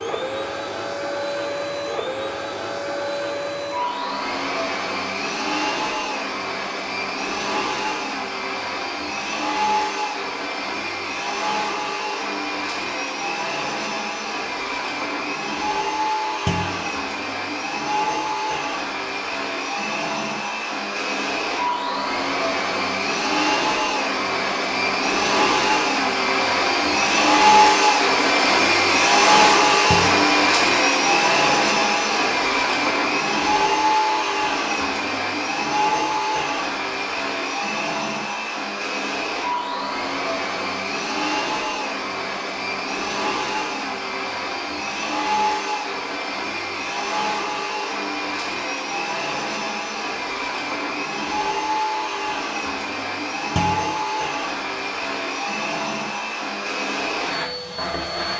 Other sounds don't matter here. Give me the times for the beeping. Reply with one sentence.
The beeping can't be heard in this clip.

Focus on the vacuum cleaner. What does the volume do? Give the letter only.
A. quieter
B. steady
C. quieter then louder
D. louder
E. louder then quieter
E.